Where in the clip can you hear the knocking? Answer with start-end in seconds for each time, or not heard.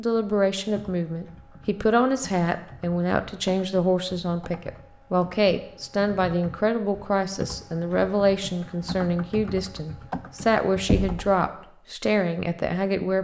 10.8-11.3.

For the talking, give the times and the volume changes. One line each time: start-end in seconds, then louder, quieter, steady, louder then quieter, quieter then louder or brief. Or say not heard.
0.0-13.1 steady.